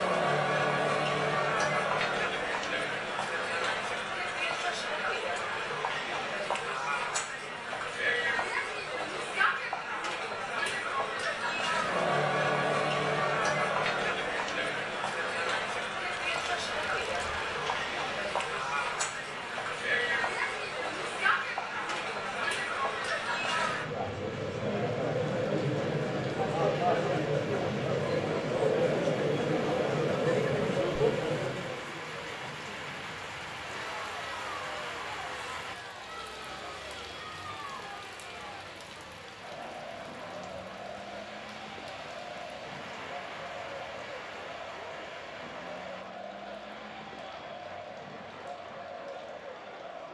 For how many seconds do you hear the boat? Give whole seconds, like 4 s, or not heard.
not heard.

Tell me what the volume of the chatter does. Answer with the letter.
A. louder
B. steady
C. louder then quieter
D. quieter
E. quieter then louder
D.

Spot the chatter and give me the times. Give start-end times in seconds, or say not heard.
0.0-50.0.